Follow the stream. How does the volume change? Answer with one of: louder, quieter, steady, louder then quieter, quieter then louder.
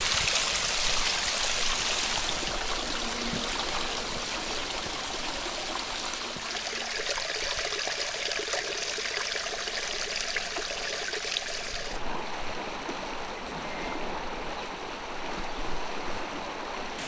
quieter.